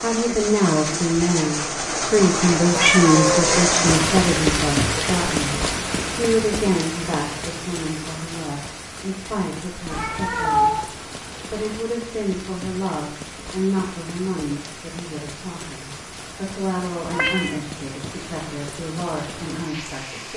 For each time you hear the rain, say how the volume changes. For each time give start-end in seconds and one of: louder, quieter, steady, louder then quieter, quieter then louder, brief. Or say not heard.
0.0-20.3 quieter.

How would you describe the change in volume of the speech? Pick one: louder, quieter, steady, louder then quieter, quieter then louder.
quieter.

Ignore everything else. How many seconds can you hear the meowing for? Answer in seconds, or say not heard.
2 s.